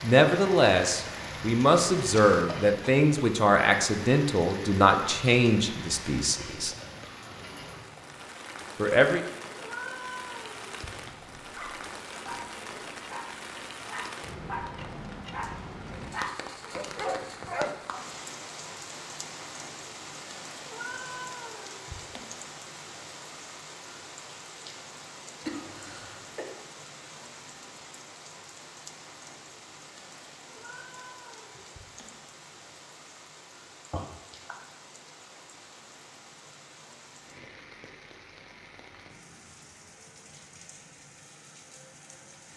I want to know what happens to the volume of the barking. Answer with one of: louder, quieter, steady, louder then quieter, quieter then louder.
louder.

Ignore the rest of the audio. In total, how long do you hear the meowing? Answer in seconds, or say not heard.
5 s.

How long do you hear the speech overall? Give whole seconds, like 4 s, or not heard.
7 s.